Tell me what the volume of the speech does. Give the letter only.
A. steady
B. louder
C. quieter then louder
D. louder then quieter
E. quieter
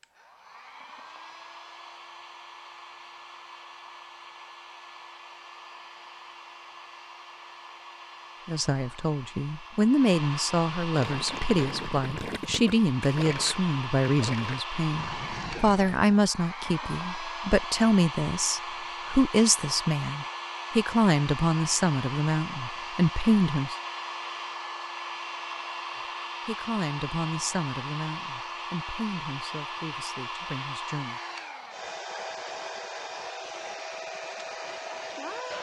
E.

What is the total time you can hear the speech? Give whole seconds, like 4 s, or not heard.
20 s.